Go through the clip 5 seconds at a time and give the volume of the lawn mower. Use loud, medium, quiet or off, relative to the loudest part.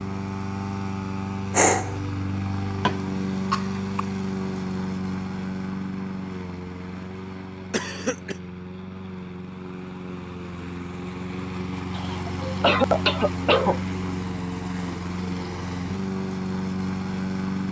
loud, medium, loud, loud.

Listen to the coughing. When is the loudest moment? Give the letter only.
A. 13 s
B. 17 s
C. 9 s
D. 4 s
A.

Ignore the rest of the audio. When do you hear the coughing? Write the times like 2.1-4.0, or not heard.
2.9-4.0, 7.7-8.3, 11.9-13.8.